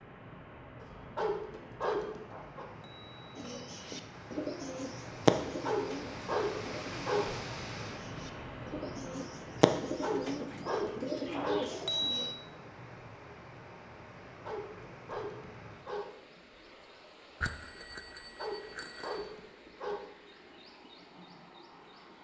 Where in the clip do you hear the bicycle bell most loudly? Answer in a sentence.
The loudest moment of the bicycle bell is at 12 seconds.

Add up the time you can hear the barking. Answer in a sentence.
You can hear the barking for 9 seconds altogether.